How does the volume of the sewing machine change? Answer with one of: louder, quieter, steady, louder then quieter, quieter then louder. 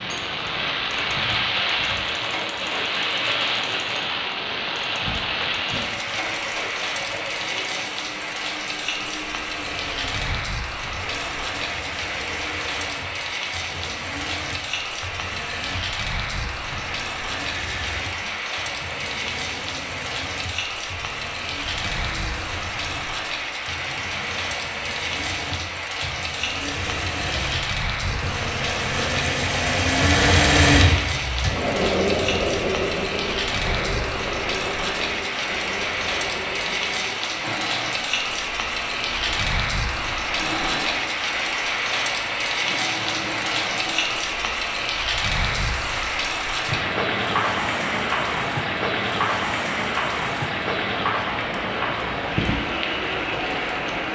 louder then quieter.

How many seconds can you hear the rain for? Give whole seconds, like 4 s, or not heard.
54 s.